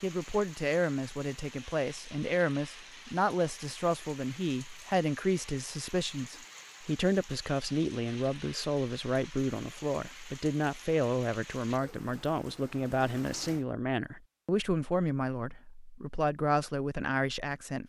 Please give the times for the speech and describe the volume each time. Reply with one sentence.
You can hear the speech from 0.0 to 17.8 s, at a steady volume.